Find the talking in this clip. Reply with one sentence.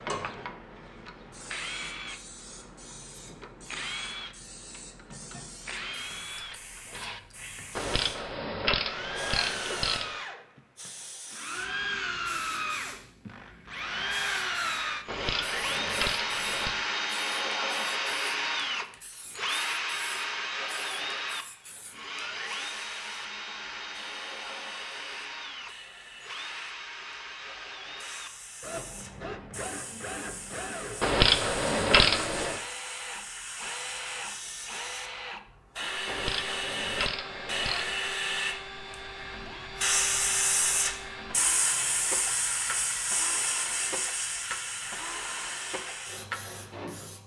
You can't hear the talking here.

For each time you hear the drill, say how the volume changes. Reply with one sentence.
The drill can be heard from 0.0 to 47.2 s, getting louder then quieter.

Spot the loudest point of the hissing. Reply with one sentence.
The volume of the hissing peaks at 40 seconds.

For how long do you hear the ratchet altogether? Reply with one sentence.
You can hear the ratchet for 8 seconds altogether.